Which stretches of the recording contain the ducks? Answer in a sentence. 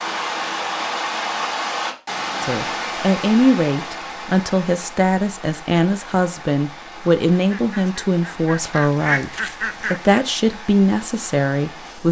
The ducks can be heard from 7.3 to 10.6 s.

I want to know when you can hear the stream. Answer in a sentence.
The stream can be heard from 0.0 to 12.0 s.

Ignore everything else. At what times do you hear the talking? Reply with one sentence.
You can hear the talking from 2.4 to 12.0 s.